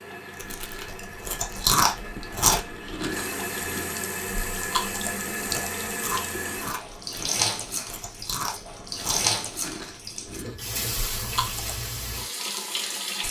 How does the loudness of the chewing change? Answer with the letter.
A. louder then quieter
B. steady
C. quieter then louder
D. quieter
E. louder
D.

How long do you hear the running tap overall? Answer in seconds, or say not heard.
13 s.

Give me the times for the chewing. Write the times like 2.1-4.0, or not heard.
0.4-11.7.